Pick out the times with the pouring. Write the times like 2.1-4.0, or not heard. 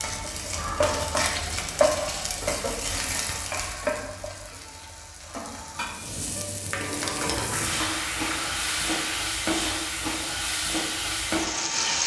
7.5-9.2.